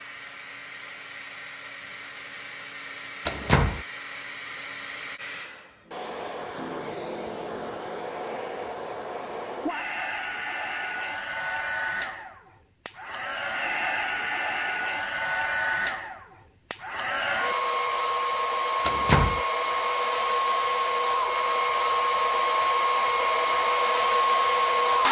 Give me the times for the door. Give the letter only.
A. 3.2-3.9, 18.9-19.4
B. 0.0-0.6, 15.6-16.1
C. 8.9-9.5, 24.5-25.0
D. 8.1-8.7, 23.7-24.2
A.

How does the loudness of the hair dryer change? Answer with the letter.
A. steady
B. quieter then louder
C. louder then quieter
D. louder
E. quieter
D.